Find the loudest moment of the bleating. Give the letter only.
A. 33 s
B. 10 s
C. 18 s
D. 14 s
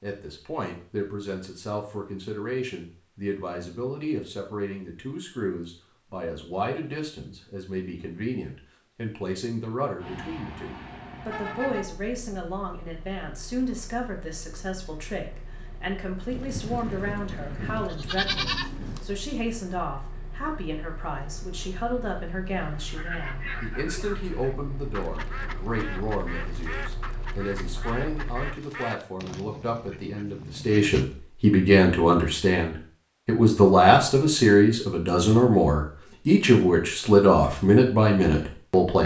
C.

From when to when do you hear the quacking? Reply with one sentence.
The quacking can be heard from 22.6 to 31.2 s.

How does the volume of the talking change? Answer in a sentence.
The loudness of the talking goes up.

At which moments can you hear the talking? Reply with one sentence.
You can hear the talking from 0.0 to 39.0 s.